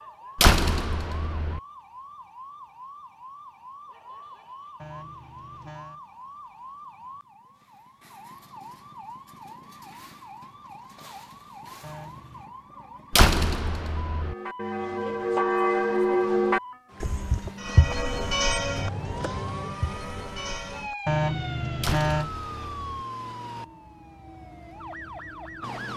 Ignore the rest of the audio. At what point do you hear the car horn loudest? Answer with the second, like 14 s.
22 s.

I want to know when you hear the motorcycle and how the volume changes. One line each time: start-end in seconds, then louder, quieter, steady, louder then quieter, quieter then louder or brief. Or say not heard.
not heard.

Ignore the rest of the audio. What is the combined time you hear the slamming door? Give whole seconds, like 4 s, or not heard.
4 s.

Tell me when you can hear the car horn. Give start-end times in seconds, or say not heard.
4.8-6.0, 11.8-12.4, 21.1-22.3.